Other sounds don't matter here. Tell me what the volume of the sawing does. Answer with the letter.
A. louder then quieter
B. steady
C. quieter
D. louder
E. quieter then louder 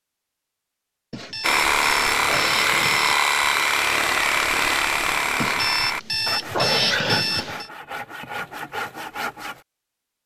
C.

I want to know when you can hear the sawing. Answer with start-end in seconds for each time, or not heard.
1.4-9.6.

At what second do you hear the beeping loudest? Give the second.
7 s.